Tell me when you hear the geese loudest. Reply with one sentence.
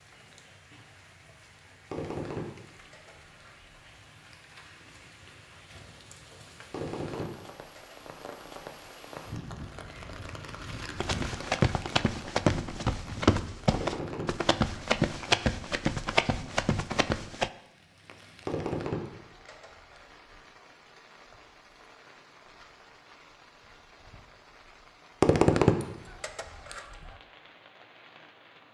The loudest moment of the geese is at 26 seconds.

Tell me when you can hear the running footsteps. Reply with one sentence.
The running footsteps can be heard from 10.9 to 17.5 s.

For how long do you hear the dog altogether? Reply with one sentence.
You can't hear the dog here.